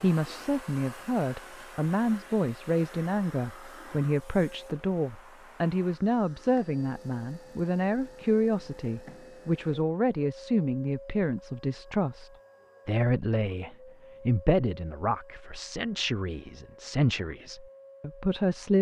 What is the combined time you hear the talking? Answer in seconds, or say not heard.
19 s.